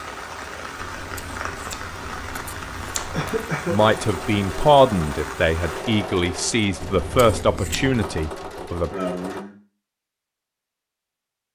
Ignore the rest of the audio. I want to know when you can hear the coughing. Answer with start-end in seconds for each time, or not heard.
3.1-3.8, 8.9-9.6.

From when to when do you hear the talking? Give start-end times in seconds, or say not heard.
3.7-8.9.